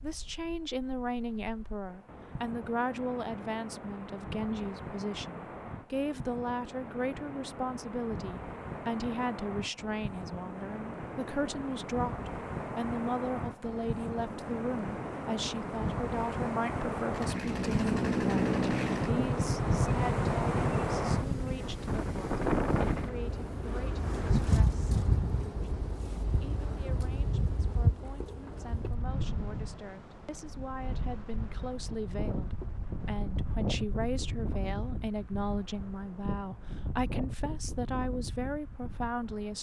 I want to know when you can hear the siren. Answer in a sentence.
The siren can't be heard in this clip.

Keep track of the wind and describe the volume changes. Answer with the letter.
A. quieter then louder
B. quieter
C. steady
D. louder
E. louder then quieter
E.